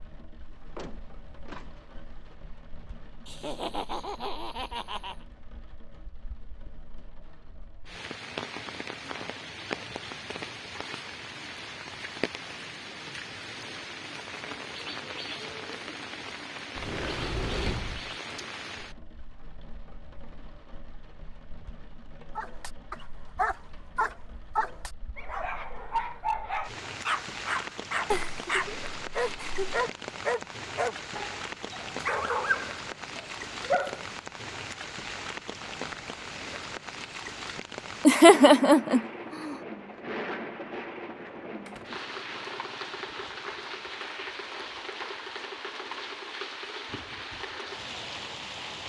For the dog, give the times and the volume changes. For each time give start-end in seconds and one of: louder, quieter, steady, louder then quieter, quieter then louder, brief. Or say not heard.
22.4-34.1 steady.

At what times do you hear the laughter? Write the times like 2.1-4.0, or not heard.
3.2-5.2, 28.1-29.7, 38.0-39.5.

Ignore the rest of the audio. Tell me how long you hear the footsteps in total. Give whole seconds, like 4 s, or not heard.
not heard.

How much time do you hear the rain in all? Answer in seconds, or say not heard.
49 s.